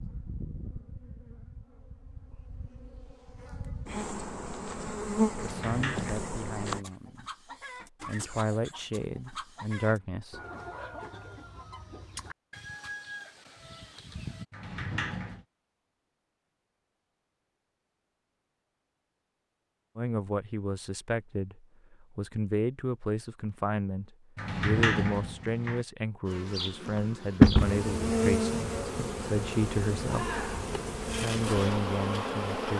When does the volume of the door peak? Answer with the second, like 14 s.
25 s.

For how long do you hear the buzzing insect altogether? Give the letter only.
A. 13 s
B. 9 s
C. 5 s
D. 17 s
A.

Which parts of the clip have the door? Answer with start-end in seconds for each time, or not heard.
5.3-6.8, 14.5-15.4, 24.4-25.9.